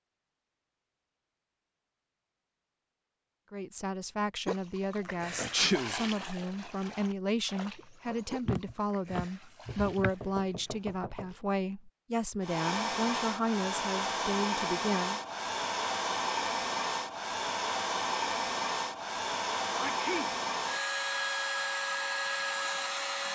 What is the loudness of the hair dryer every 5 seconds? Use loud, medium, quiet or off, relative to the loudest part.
off, off, loud, loud, loud.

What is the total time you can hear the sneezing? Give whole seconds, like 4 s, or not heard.
3 s.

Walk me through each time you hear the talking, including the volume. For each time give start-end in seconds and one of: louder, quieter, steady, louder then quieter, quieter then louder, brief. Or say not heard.
3.5-15.2 steady.